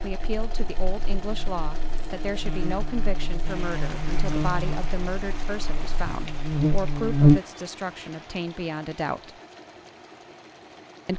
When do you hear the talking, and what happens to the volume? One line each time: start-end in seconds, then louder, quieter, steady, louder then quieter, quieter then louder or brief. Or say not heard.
0.0-9.4 steady.